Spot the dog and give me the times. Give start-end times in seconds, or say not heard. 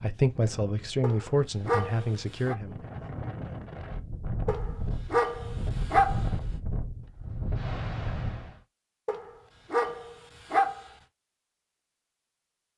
1.0-2.5, 4.5-6.2, 9.1-10.8.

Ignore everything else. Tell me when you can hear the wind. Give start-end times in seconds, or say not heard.
0.0-8.6.